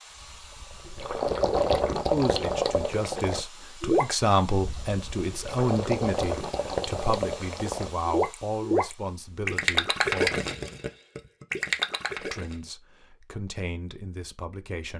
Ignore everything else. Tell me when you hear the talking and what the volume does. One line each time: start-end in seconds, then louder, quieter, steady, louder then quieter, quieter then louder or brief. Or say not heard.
2.1-10.4 louder then quieter
12.2-14.9 brief.